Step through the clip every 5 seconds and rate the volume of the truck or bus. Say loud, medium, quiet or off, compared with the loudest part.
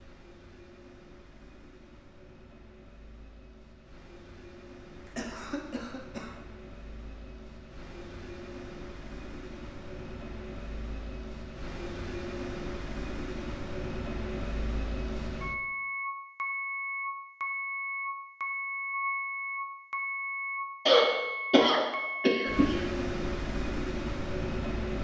quiet, quiet, medium, loud, loud.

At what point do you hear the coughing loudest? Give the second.
21 s.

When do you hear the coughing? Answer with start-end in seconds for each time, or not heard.
4.9-6.3, 20.9-22.8.